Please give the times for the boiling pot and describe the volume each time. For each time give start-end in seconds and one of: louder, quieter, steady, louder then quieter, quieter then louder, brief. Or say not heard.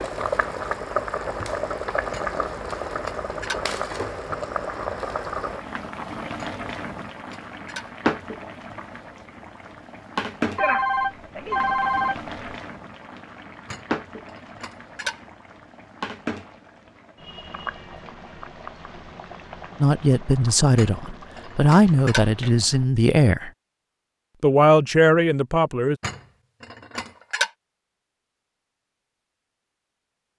0.0-22.9 quieter.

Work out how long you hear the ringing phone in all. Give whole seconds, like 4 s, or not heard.
2 s.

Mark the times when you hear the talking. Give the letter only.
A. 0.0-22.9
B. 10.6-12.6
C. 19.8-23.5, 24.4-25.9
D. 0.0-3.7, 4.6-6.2
C.